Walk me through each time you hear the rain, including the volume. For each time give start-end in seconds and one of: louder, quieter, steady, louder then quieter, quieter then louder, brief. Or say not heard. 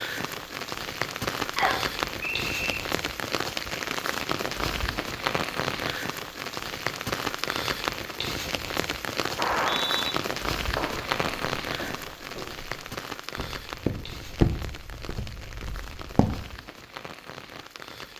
0.0-18.1 quieter.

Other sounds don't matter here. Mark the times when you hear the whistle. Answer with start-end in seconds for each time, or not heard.
1.6-2.8, 9.3-10.2.